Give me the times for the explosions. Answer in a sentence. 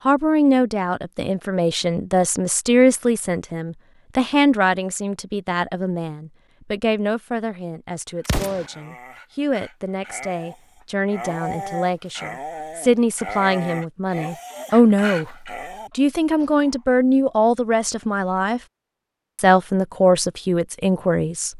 You can hear the explosions from 8.2 to 8.7 s.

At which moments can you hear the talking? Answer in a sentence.
You can hear the talking from 0.1 to 15.3 s, from 15.9 to 18.6 s and from 19.4 to 21.5 s.